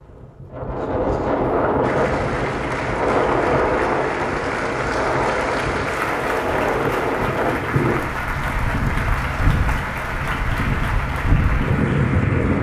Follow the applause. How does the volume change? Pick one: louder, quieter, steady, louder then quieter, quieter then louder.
steady.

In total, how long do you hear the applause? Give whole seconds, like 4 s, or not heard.
11 s.